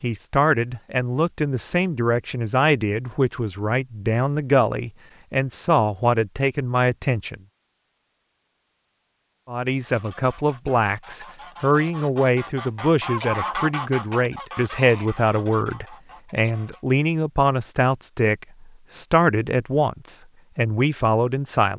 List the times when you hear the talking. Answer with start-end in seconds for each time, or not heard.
0.0-7.4, 9.4-21.7.